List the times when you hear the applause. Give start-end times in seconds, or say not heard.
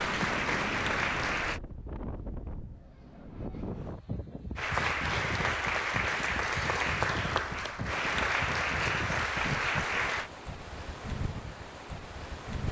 0.0-1.6, 4.5-10.3.